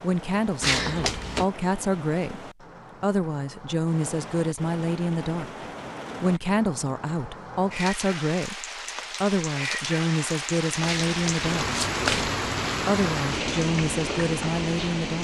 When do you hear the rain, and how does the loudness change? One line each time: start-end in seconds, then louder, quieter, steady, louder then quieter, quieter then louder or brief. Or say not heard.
0.0-15.1 louder.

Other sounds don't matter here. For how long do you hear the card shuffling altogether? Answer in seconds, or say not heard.
2 s.